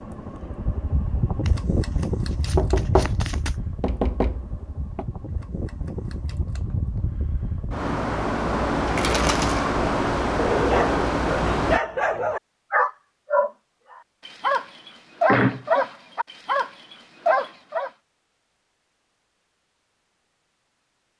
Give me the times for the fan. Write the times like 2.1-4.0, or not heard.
0.0-11.8.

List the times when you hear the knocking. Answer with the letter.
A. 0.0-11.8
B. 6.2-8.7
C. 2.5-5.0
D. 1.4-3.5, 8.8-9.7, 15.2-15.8
C.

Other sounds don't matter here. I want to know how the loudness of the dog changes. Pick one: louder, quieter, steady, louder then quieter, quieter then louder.
steady.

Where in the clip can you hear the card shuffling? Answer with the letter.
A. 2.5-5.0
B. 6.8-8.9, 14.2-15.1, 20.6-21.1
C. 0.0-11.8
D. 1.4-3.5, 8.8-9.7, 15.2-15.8
D.